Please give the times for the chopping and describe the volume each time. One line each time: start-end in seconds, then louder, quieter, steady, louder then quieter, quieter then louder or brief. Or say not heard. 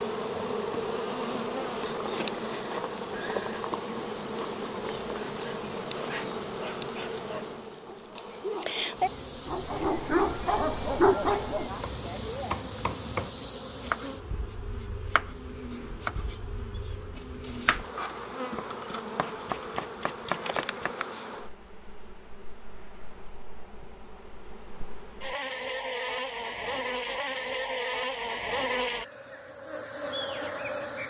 11.7-20.9 steady.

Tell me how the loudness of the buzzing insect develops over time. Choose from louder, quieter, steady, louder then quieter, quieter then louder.
quieter then louder.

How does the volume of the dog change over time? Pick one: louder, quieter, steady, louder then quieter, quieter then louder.
louder.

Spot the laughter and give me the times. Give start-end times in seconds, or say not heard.
not heard.